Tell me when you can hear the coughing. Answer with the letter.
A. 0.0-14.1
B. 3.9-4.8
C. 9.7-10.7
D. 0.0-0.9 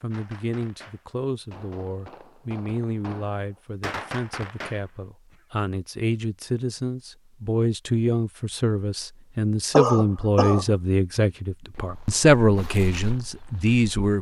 C.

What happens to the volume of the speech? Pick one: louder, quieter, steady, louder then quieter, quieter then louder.
louder.